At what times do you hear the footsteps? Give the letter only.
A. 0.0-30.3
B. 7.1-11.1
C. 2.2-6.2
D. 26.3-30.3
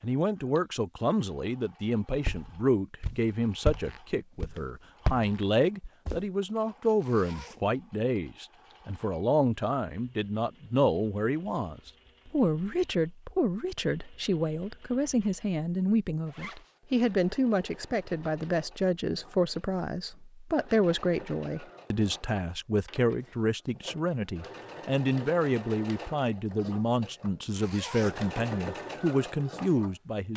C.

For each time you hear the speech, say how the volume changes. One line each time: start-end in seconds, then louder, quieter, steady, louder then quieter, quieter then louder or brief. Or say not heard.
0.0-30.3 steady.